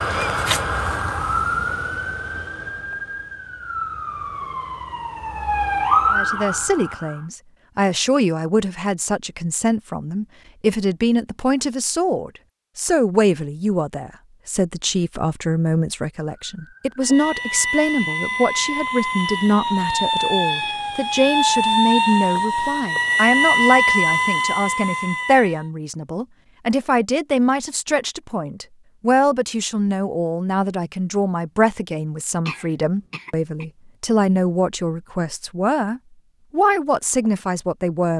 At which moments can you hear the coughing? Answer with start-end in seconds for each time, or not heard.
32.5-33.6.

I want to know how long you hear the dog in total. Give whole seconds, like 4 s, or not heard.
not heard.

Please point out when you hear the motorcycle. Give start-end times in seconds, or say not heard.
not heard.